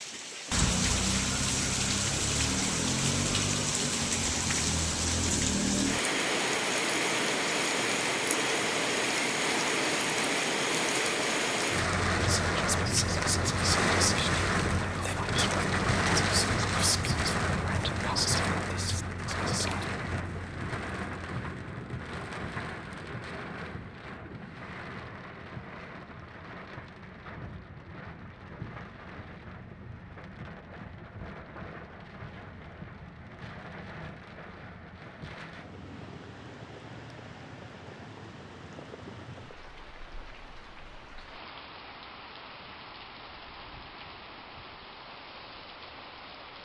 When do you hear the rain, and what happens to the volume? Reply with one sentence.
The rain can be heard from 0.0 to 46.5 s, getting quieter.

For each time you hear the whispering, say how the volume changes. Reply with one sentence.
You can hear the whispering from 12.2 to 19.9 s, at a steady volume.